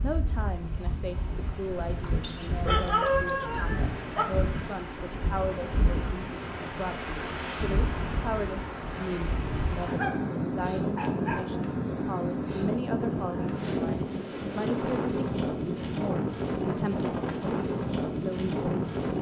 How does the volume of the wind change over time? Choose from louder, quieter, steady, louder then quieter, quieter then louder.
louder.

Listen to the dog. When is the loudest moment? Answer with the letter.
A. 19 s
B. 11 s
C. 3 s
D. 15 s
C.